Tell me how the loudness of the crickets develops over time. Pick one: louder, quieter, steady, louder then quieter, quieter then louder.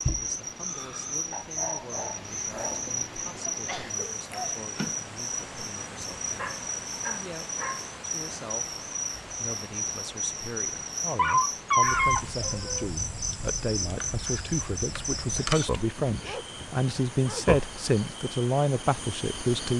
steady.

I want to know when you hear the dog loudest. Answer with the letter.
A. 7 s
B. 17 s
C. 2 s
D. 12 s
D.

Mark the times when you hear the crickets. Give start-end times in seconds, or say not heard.
0.0-19.7.